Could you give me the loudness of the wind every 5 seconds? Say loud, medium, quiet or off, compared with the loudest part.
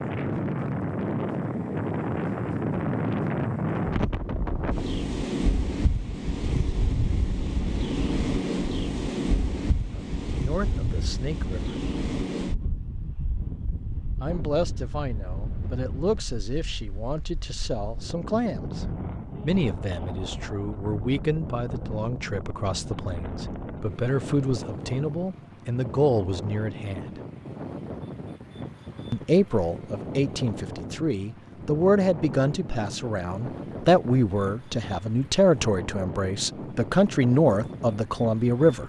loud, loud, medium, medium, medium, medium, medium, medium.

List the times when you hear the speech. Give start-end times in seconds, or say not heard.
9.9-11.8, 14.2-27.1, 29.1-38.8.